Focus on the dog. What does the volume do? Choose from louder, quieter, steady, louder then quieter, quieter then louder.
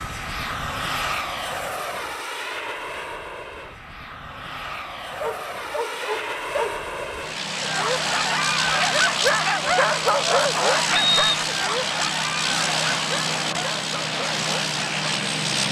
louder then quieter.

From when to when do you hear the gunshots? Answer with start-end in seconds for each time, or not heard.
not heard.